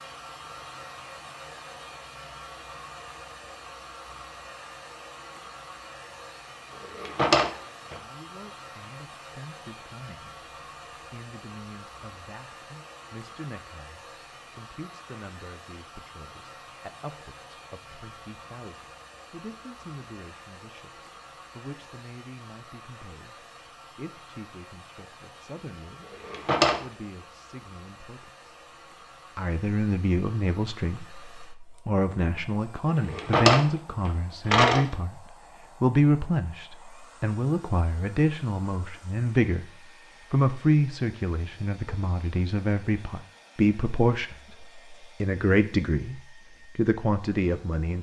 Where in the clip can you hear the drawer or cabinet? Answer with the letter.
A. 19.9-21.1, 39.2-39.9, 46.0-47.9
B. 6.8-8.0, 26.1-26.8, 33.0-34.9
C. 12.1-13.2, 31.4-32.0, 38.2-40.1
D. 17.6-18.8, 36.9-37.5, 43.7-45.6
B.